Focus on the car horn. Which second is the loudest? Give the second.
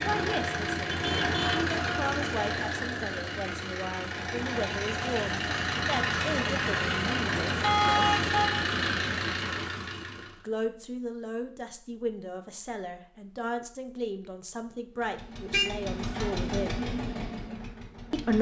8 s.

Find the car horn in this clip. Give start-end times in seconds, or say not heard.
0.9-1.6, 7.6-8.6, 15.5-16.3.